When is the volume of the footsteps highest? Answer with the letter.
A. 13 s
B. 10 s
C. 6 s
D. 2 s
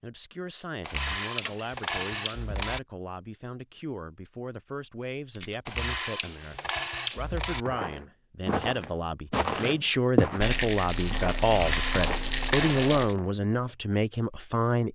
B.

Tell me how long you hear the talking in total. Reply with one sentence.
You can hear the talking for 15 seconds altogether.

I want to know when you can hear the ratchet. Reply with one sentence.
The ratchet can be heard from 0.8 to 2.8 s, from 5.7 to 7.7 s and from 11.5 to 13.1 s.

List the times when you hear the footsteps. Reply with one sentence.
You can hear the footsteps from 7.6 to 13.3 s.